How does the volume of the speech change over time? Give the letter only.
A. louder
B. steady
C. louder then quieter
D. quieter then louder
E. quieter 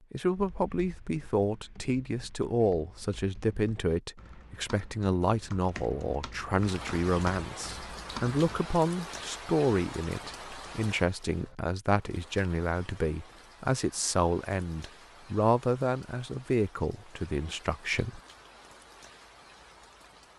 B.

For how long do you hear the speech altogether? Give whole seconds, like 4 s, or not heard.
18 s.